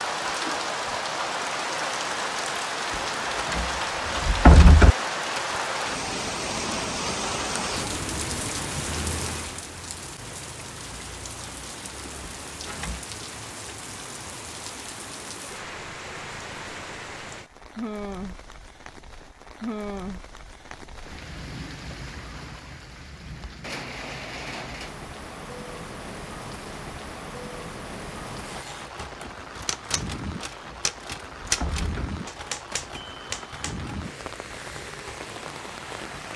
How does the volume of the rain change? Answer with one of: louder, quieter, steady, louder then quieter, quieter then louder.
quieter.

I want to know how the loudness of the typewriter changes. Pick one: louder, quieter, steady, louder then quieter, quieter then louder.
louder then quieter.